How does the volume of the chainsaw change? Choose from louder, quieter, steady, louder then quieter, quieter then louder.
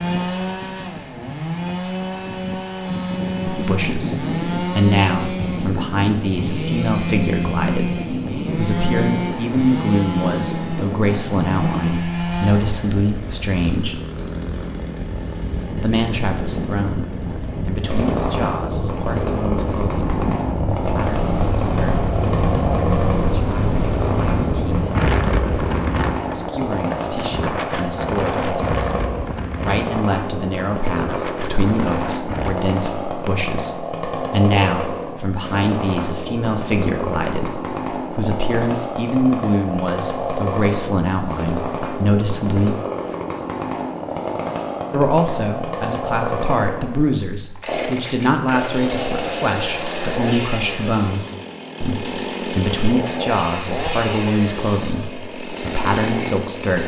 steady.